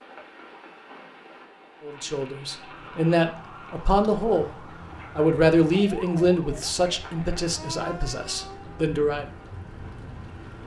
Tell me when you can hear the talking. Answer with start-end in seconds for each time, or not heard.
1.8-9.2.